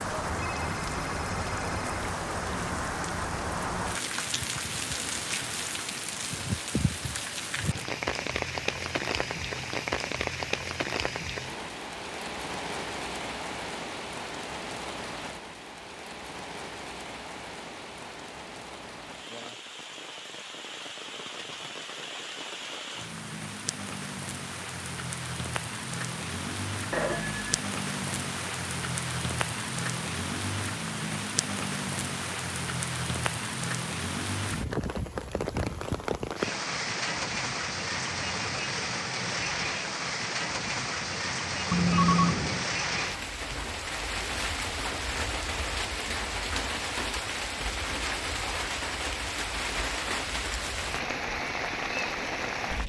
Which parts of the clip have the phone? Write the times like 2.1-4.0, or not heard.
0.3-1.8, 26.9-27.4, 41.7-42.6.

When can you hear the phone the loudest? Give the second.
42 s.